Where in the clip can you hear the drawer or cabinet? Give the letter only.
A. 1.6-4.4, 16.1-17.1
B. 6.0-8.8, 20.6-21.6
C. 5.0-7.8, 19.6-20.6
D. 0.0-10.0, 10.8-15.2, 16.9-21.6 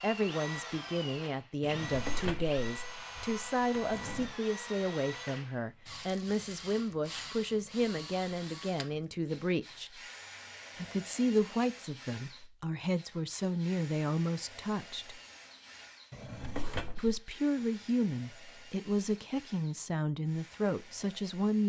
A.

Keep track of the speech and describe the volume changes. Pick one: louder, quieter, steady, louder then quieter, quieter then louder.
steady.